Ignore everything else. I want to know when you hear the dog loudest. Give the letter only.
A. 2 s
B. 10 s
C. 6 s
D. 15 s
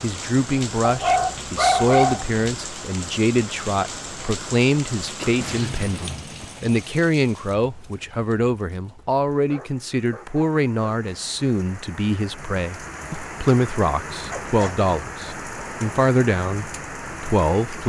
A.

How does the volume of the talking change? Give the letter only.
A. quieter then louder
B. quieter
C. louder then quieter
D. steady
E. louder
D.